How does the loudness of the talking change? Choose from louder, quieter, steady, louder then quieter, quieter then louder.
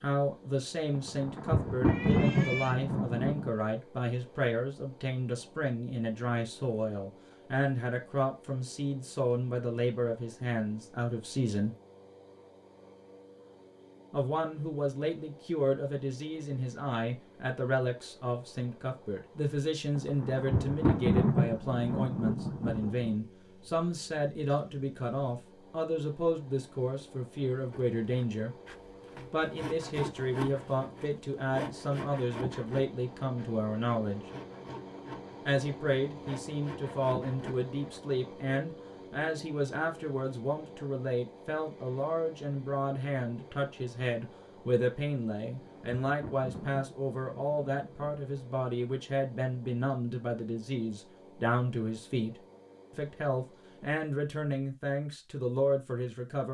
steady.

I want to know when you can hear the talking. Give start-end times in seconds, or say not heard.
0.0-11.8, 14.1-28.5, 29.3-34.2, 35.5-52.4, 53.0-56.4.